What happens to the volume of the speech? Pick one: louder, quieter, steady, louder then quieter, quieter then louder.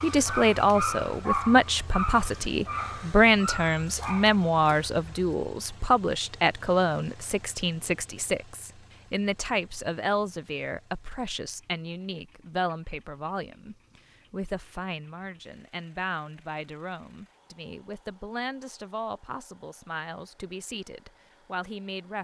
quieter.